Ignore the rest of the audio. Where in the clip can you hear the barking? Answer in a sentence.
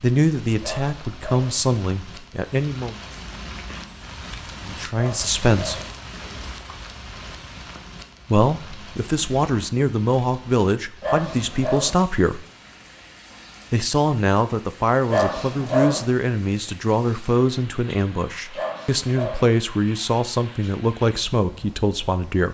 You can hear the barking from 0.6 to 1.6 s, from 5.0 to 5.9 s, from 11.0 to 11.9 s, from 15.1 to 16.0 s and from 18.6 to 19.4 s.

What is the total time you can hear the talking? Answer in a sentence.
You can hear the talking for 17 seconds altogether.